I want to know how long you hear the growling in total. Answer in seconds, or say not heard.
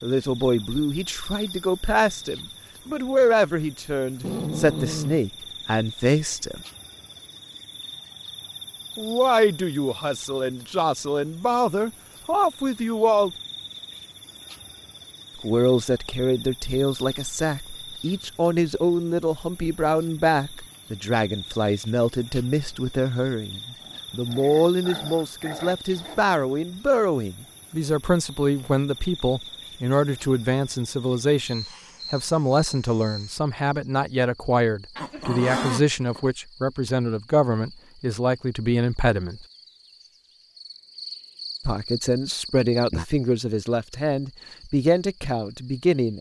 5 s.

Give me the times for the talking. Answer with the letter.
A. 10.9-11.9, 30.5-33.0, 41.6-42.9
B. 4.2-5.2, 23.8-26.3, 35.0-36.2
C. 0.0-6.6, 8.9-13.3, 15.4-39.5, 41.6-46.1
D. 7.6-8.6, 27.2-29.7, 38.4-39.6
C.